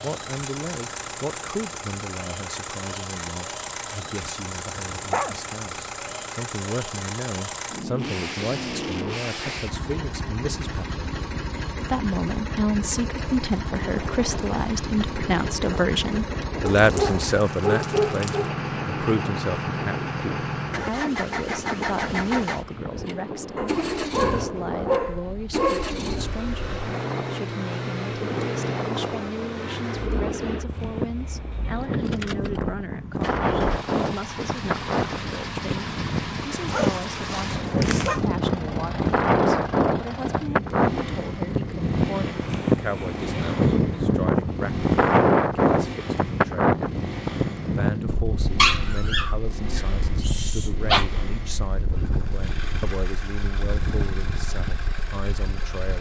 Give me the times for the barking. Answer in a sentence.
You can hear the barking from 4.9 to 5.3 s, from 16.6 to 18.5 s, from 23.6 to 25.9 s, from 36.7 to 38.2 s and from 48.5 to 51.0 s.